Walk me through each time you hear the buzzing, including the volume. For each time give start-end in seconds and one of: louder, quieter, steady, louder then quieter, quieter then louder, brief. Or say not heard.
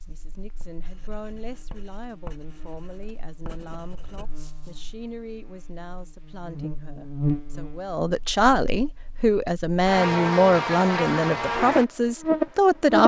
0.0-13.0 louder.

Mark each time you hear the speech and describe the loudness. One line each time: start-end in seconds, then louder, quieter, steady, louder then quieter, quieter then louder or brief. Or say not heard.
0.1-13.0 louder.